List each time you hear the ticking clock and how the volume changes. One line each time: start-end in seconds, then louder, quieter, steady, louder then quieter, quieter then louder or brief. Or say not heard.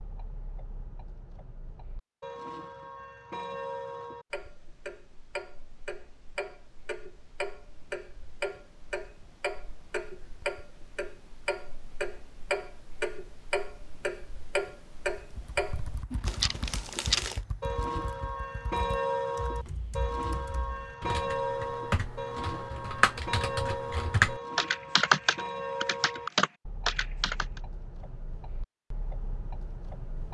0.0-30.2 louder then quieter.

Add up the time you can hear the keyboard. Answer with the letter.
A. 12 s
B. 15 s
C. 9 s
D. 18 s
A.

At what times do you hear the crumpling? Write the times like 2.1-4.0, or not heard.
16.2-17.4.